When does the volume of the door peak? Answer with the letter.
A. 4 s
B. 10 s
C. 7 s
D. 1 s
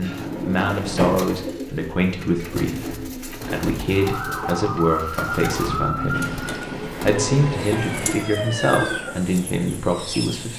D.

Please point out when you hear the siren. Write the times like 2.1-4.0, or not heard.
3.9-9.2.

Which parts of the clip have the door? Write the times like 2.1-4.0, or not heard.
0.1-1.2, 6.2-6.8.